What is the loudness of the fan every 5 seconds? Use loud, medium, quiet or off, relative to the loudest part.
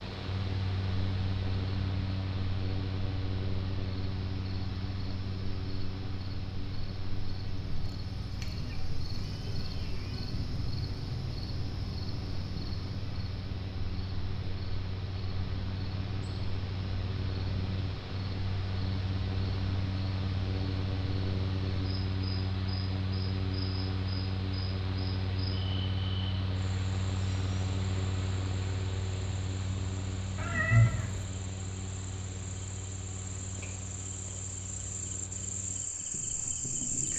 loud, medium, medium, loud, loud, loud, medium, medium.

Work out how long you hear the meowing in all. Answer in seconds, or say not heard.
3 s.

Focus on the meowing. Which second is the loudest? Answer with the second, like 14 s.
31 s.